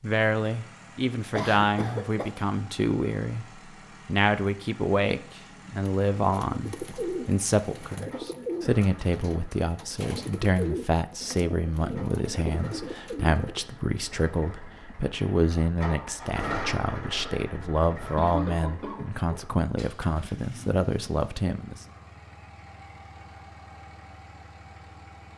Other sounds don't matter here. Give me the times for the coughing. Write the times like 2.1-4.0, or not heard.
1.3-2.3, 17.9-19.4.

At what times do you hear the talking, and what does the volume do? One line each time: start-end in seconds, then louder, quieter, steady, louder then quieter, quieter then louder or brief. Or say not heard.
0.0-21.9 steady.